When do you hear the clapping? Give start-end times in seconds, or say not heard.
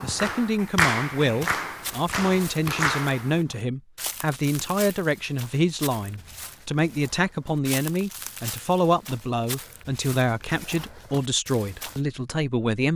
0.0-3.4.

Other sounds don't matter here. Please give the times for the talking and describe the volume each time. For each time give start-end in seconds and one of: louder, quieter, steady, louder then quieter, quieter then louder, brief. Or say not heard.
0.0-12.9 steady.